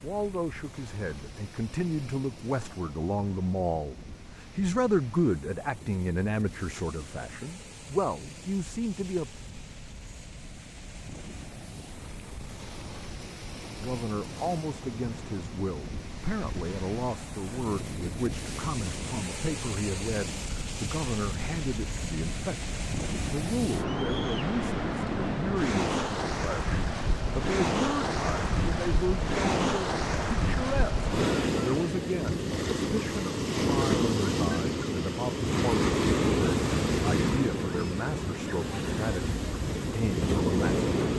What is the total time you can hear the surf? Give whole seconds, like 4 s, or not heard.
41 s.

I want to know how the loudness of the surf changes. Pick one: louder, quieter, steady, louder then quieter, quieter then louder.
louder.